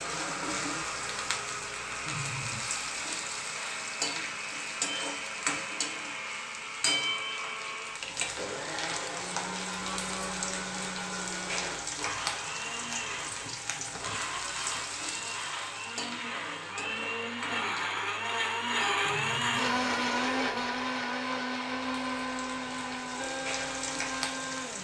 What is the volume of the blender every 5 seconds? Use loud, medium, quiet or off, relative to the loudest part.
medium, medium, medium, loud, loud.